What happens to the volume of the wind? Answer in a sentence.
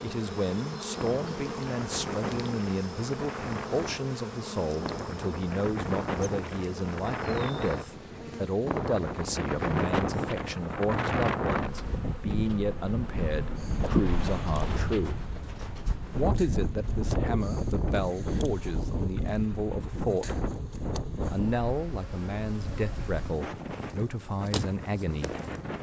The volume of the wind goes up, then down.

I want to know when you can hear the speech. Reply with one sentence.
The speech can be heard from 0.0 to 15.2 s, from 16.1 to 20.4 s and from 21.3 to 25.4 s.